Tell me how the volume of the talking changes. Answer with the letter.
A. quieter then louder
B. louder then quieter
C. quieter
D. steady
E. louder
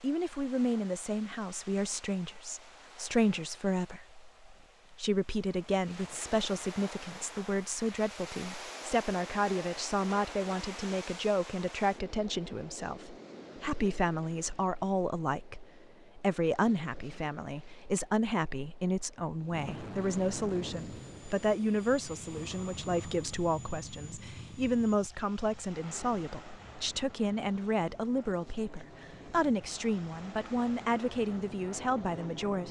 D.